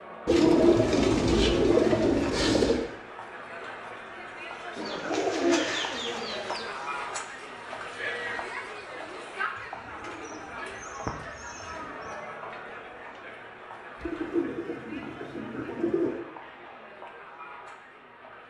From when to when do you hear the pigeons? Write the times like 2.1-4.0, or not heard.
0.2-2.9, 4.8-6.7, 10.0-12.1, 14.0-16.2.